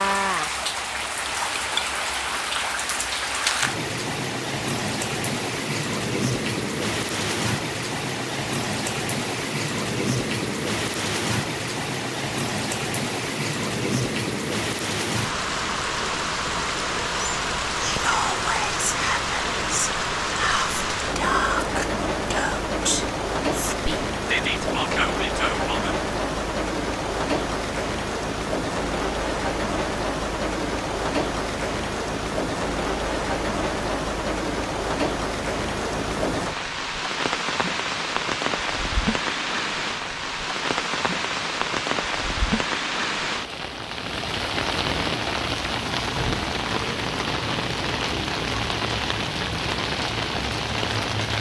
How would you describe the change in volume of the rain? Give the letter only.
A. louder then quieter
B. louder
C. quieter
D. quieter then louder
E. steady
E.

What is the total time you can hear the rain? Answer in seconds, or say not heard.
51 s.